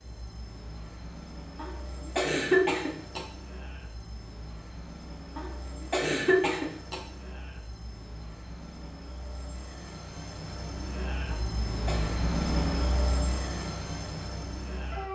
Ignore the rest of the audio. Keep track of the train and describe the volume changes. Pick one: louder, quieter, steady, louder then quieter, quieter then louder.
louder.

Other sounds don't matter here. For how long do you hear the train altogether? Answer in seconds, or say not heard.
15 s.